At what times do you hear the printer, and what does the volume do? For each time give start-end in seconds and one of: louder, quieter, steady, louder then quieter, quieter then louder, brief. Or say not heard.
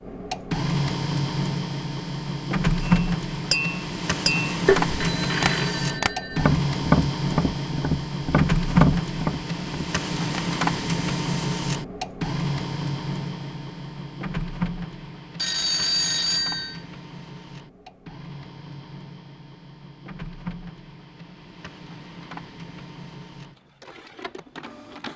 0.0-25.1 quieter.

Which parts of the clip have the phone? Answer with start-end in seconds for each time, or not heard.
5.0-6.5, 15.3-16.8.